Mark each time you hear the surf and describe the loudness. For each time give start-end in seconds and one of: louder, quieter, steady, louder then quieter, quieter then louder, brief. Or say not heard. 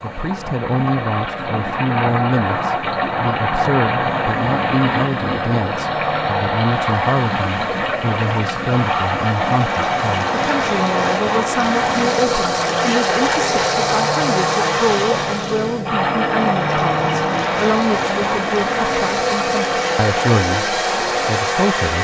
0.0-21.9 steady.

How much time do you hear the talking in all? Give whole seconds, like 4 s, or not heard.
22 s.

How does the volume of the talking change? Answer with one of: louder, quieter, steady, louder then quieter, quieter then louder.
steady.